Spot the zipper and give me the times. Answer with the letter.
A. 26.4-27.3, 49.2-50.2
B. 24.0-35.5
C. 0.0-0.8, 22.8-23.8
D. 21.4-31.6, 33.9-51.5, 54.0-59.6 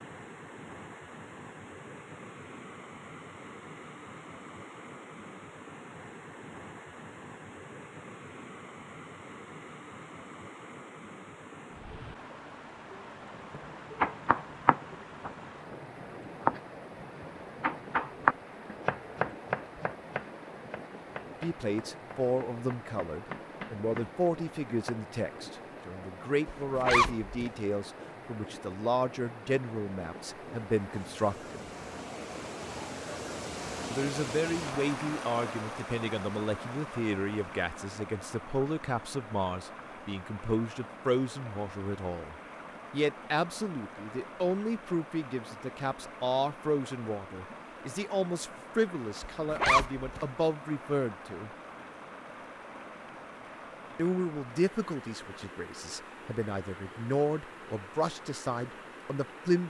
A.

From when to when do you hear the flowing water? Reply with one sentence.
You can hear the flowing water from 0.0 to 59.6 s.